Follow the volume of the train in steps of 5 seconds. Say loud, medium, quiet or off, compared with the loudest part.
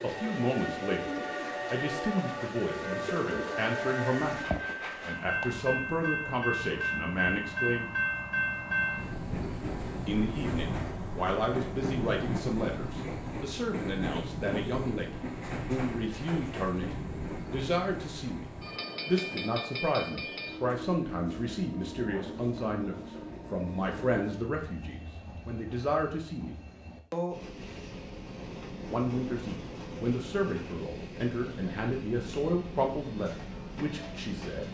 loud, loud, loud, medium, medium, medium, medium.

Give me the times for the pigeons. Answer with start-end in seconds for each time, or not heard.
0.0-4.6.